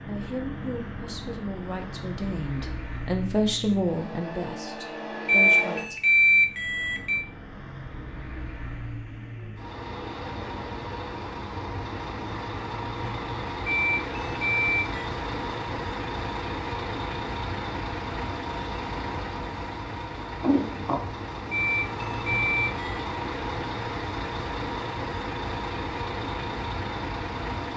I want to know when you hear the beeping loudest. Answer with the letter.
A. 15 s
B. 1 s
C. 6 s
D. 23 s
C.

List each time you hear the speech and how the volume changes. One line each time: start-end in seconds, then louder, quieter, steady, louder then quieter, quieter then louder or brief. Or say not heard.
0.0-6.0 louder then quieter.